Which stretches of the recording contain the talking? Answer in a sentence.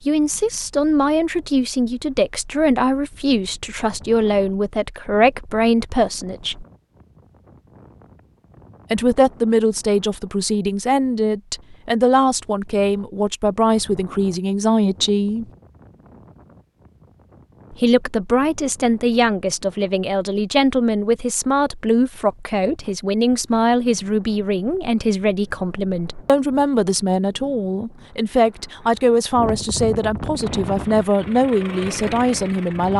The talking can be heard from 0.1 to 6.7 s, from 8.9 to 15.4 s and from 17.7 to 32.9 s.